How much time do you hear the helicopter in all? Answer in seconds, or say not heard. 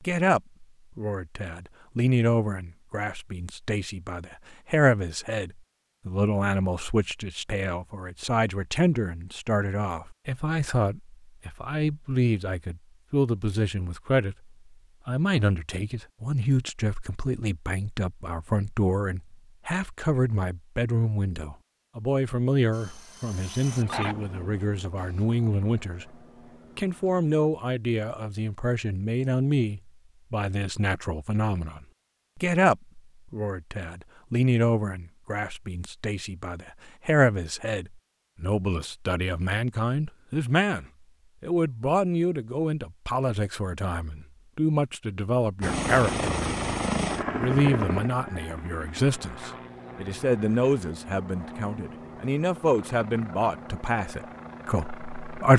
15 s.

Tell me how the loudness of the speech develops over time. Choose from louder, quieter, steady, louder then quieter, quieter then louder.
steady.